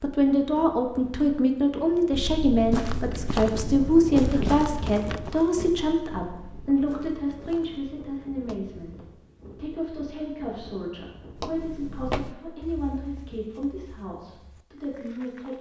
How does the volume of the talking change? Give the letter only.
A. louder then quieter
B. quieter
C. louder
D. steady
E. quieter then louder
B.